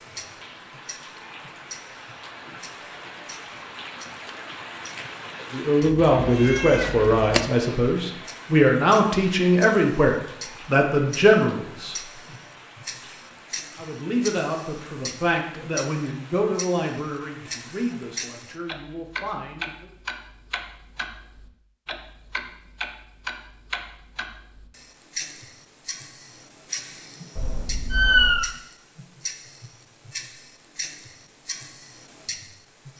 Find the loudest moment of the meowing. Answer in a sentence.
The volume of the meowing peaks at 28 seconds.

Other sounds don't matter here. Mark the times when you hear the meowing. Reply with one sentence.
The meowing can be heard from 5.8 to 7.5 s and from 27.4 to 28.4 s.